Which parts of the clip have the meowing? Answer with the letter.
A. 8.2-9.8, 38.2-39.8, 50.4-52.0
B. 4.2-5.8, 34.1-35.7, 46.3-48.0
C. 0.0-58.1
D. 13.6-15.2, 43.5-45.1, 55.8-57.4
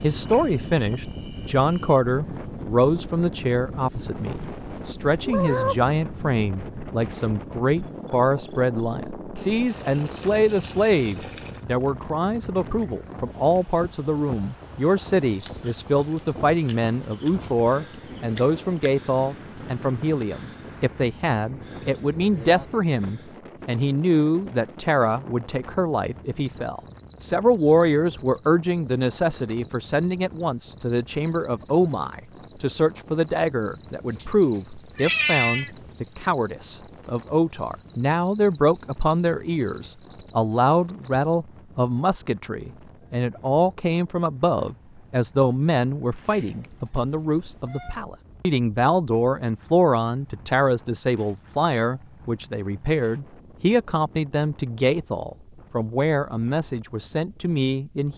B.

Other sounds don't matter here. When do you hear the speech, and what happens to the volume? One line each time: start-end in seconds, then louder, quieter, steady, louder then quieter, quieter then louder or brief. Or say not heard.
0.0-58.1 steady.